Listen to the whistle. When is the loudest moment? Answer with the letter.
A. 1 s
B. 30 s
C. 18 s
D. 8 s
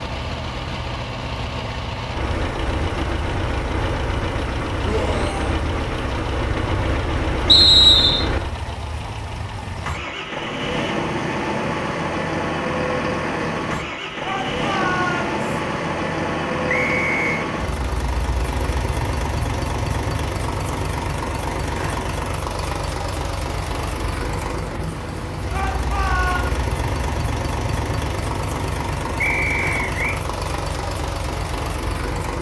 D.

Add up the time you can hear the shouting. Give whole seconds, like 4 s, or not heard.
3 s.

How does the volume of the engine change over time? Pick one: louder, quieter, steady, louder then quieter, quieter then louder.
steady.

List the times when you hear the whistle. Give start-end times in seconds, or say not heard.
7.5-8.2, 16.6-17.4, 29.2-30.2.